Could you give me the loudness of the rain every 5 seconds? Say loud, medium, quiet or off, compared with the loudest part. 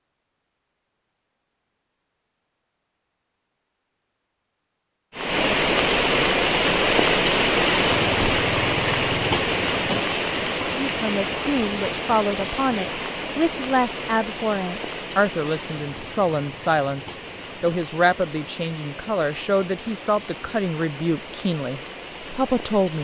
off, loud, medium, quiet, quiet.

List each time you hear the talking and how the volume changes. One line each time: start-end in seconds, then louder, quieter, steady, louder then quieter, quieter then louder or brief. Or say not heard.
10.7-22.9 steady.